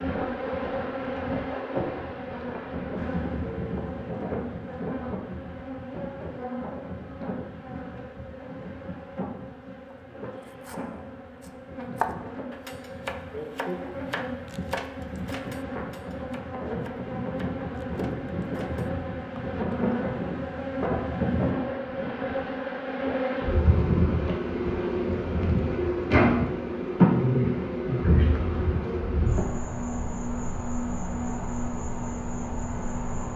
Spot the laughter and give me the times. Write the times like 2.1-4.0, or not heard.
not heard.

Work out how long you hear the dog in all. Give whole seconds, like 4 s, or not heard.
not heard.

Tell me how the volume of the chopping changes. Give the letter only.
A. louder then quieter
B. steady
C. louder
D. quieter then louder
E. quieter
A.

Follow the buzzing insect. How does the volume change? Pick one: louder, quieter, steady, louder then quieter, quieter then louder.
quieter then louder.